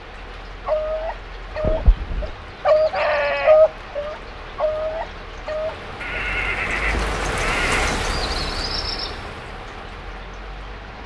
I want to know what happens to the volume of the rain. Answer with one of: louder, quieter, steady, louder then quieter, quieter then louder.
louder then quieter.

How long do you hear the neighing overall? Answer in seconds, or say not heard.
3 s.